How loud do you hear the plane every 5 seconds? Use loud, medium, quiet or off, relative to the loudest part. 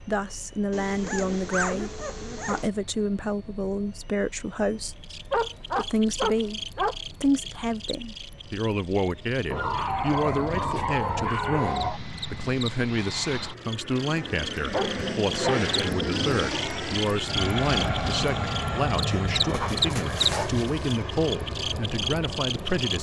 quiet, quiet, medium, loud, medium.